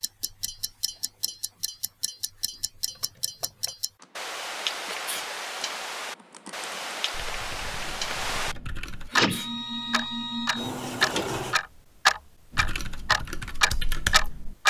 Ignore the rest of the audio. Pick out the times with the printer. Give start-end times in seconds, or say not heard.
9.1-11.6.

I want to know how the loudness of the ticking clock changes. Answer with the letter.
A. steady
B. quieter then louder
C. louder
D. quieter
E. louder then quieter
C.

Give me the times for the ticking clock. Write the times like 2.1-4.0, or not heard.
0.0-8.6, 9.2-14.6.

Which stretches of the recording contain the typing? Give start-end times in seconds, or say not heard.
2.9-9.1, 12.5-14.6.